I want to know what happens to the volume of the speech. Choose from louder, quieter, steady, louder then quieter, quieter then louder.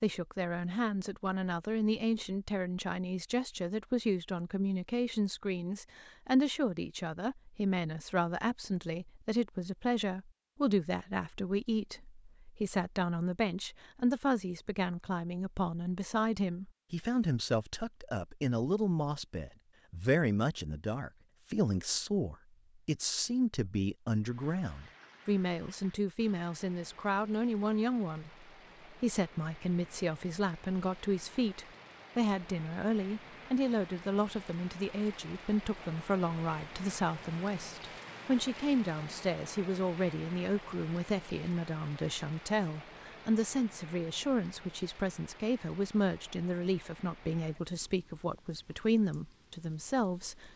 steady.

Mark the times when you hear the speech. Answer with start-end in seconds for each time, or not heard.
0.0-50.5.